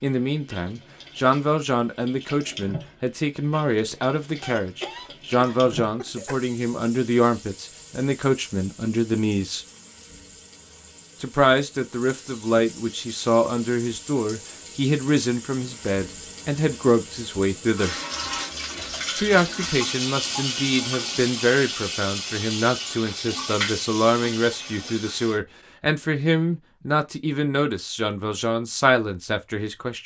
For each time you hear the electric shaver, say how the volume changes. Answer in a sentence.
The electric shaver can't be heard in this clip.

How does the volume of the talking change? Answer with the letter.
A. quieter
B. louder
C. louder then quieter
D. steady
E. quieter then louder
D.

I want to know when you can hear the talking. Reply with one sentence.
The talking can be heard from 0.0 to 9.7 s, from 11.2 to 17.9 s and from 19.1 to 30.0 s.